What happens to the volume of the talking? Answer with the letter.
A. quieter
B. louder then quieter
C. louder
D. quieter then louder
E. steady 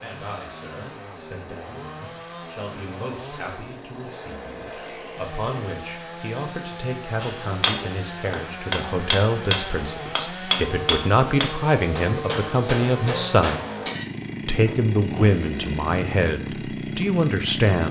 C.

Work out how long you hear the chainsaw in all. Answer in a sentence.
The chainsaw can be heard for 18 seconds in total.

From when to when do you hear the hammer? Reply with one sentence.
You can hear the hammer from 7.2 to 14.8 s.